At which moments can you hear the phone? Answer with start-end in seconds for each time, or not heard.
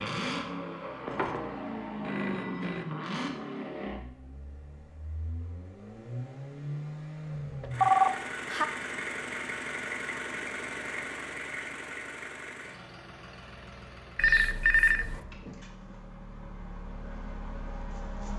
1.1-2.9, 7.6-8.7, 14.2-15.2.